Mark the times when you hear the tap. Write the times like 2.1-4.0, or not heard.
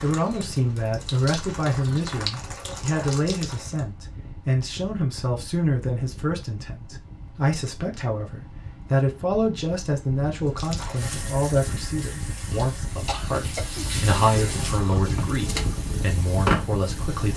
0.0-3.9, 10.6-17.3.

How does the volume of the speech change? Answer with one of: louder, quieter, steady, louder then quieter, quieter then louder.
steady.